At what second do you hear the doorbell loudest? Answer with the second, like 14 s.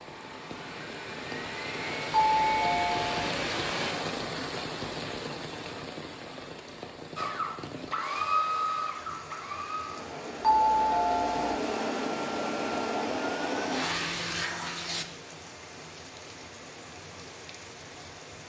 11 s.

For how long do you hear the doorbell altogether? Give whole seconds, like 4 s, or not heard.
2 s.